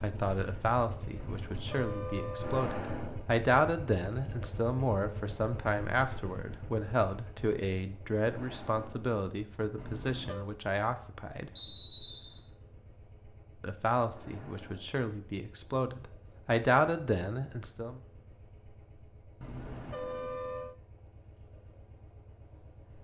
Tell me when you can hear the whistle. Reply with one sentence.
The whistle can be heard from 11.6 to 12.4 s.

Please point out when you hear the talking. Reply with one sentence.
You can hear the talking from 0.0 to 11.5 s and from 13.6 to 18.0 s.